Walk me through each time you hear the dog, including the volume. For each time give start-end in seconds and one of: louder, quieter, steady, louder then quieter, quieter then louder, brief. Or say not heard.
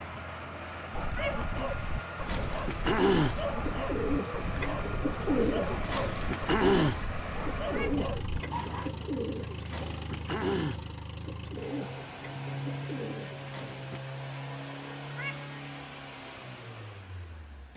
0.9-8.9 steady.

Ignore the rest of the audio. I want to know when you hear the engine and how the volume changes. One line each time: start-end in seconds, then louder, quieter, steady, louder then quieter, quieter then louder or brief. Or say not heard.
0.0-17.7 steady.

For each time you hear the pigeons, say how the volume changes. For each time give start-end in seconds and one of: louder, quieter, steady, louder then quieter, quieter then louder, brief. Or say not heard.
2.2-14.0 quieter.